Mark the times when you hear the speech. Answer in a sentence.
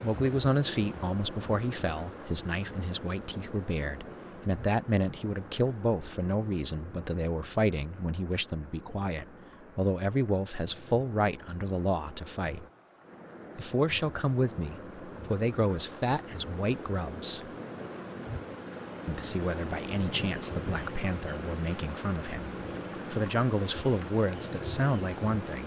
The speech can be heard from 0.0 to 12.7 s, from 13.6 to 17.4 s and from 19.1 to 25.6 s.